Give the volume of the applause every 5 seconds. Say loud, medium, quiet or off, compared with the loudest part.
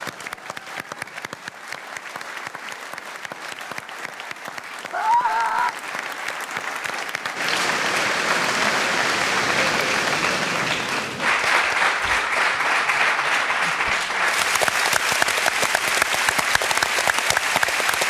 quiet, loud, loud, loud.